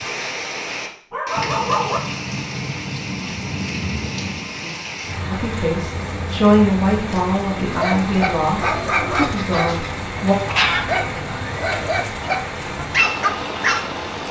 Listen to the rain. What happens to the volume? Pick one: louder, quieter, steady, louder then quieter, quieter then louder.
steady.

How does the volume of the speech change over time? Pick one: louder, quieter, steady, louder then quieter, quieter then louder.
quieter.